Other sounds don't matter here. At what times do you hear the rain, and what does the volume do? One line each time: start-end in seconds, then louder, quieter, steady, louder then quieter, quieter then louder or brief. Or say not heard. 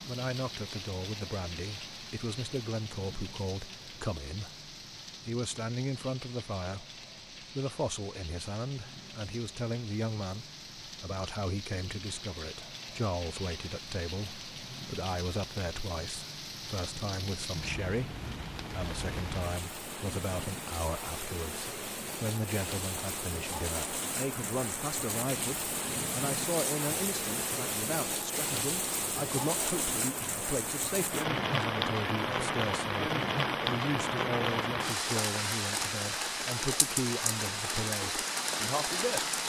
0.0-39.4 louder.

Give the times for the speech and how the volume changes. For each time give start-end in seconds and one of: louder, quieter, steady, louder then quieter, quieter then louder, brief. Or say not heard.
0.1-39.2 steady.